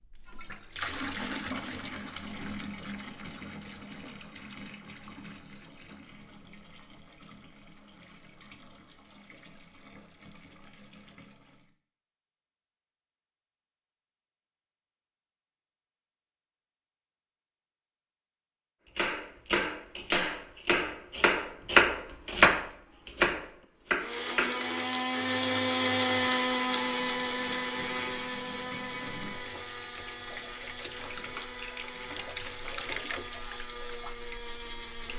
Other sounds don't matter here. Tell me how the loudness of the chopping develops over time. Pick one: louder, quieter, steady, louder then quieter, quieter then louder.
louder then quieter.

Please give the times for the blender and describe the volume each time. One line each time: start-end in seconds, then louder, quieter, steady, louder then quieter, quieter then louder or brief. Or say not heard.
24.0-35.1 quieter.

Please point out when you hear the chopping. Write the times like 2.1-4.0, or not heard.
18.9-24.8.